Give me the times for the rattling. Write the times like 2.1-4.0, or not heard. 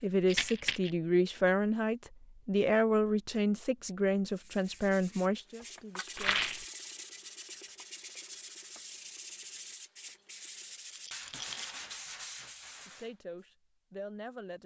0.2-0.9, 6.2-6.7, 10.8-11.8.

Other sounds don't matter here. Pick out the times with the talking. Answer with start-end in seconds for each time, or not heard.
0.0-6.4, 12.8-14.6.